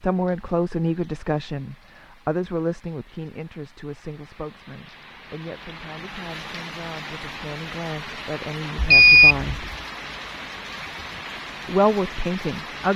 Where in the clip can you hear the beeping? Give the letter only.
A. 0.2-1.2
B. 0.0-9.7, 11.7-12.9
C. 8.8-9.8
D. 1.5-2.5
C.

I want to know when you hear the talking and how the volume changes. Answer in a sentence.
The talking can be heard from 0.0 to 9.7 s, getting quieter then louder; and briefly from 11.7 to 12.9 s.